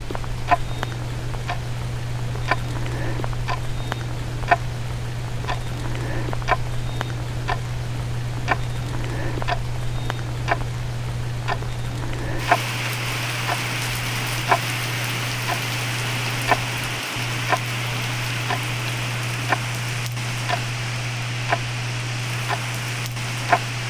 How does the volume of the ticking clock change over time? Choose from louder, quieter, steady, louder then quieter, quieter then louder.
steady.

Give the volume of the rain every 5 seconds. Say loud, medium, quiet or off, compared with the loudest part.
medium, medium, loud, loud, loud.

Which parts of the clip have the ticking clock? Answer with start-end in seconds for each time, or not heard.
0.0-23.8.